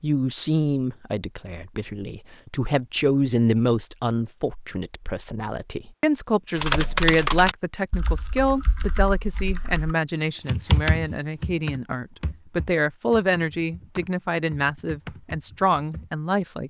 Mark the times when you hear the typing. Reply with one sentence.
You can hear the typing from 6.5 to 16.1 s.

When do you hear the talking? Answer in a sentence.
You can hear the talking from 0.0 to 16.6 s.